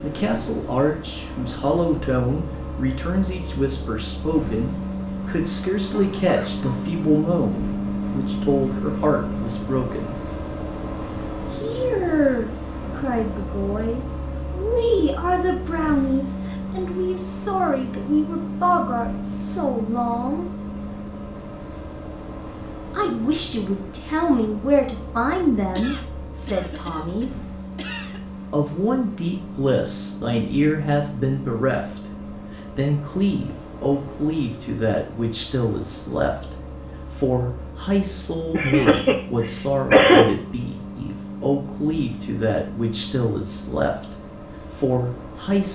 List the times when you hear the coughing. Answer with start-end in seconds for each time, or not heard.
6.2-6.7, 25.8-28.2, 38.5-40.2.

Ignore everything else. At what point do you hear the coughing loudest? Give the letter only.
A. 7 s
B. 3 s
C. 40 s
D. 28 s
C.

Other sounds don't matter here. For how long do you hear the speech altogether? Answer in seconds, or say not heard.
40 s.